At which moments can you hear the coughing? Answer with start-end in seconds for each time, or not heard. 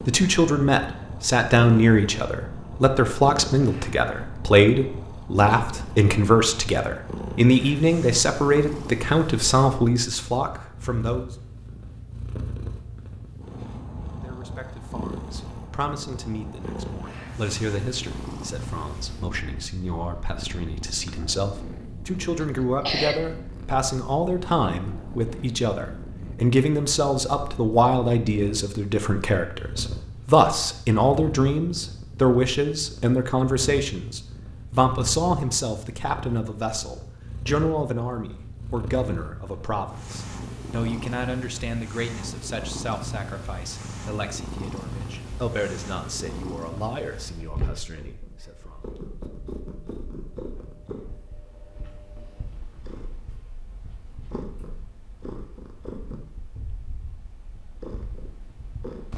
22.4-23.2.